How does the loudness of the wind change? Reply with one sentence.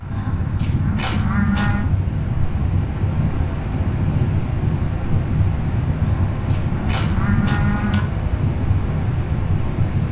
The volume of the wind stays about the same.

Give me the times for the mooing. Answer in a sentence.
The mooing can be heard from 0.1 to 1.9 s and from 6.0 to 8.0 s.